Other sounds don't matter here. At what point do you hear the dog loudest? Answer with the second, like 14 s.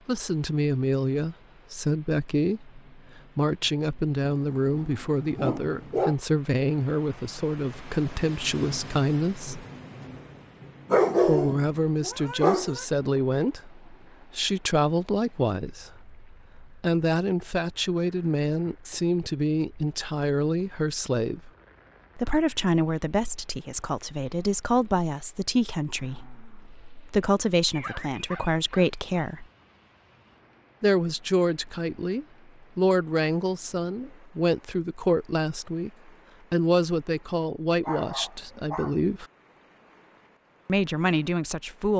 11 s.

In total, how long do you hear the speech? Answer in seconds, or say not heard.
36 s.